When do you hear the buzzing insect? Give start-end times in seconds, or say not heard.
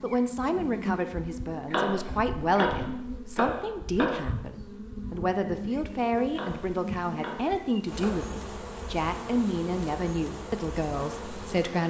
0.0-11.8.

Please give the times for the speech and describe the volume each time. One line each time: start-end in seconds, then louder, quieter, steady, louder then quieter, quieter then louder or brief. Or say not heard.
0.0-11.8 steady.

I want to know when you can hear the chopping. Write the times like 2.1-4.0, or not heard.
1.6-4.2, 6.3-8.3.